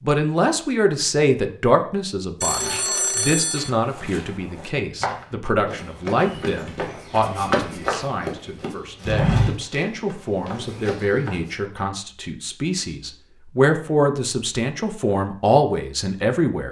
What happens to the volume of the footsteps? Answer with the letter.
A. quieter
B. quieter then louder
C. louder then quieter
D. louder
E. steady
C.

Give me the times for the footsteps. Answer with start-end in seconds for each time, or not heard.
2.5-11.7.